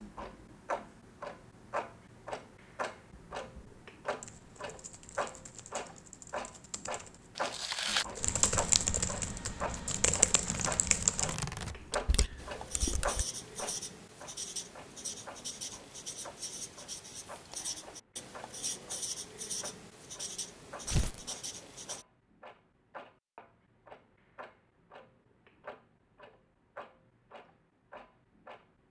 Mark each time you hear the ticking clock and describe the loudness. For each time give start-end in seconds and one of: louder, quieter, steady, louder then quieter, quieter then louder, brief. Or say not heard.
0.0-28.8 quieter.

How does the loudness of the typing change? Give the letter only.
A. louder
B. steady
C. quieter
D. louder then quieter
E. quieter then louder
D.